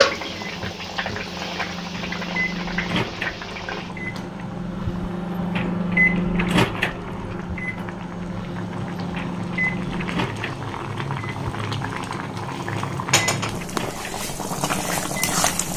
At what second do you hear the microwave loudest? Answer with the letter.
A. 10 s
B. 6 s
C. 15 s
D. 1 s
B.